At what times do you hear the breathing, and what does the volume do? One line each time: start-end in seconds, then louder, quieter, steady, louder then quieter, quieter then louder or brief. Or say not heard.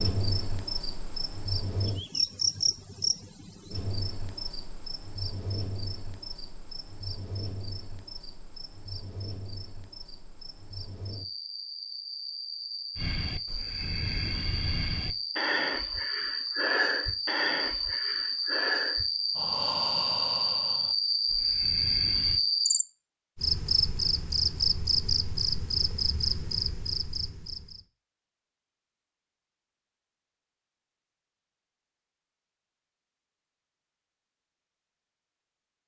12.9-22.4 louder then quieter.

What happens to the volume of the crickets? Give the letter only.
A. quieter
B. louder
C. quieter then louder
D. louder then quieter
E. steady
C.